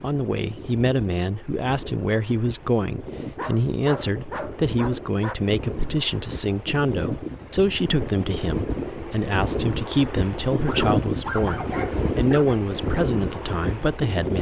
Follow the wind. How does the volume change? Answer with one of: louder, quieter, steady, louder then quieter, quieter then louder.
louder.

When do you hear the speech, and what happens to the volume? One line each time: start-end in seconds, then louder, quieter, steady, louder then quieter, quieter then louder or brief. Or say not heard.
0.0-14.3 steady.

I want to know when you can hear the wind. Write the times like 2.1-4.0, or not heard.
0.0-14.3.